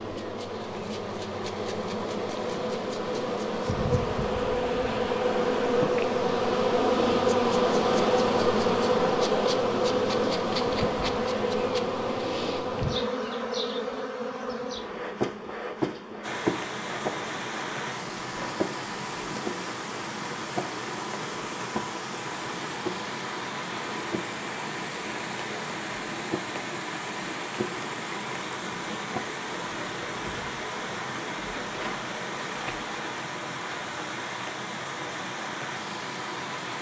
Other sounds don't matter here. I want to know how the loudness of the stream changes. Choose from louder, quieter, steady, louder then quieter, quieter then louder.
steady.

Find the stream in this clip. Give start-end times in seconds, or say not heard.
16.2-36.7.